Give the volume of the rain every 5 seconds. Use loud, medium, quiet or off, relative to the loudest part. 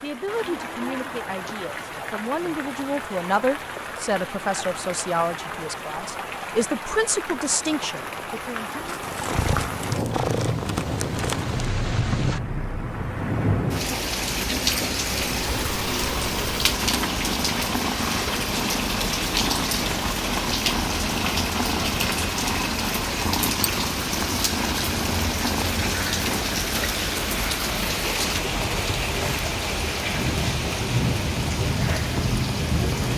medium, medium, loud, loud, loud, loud, loud.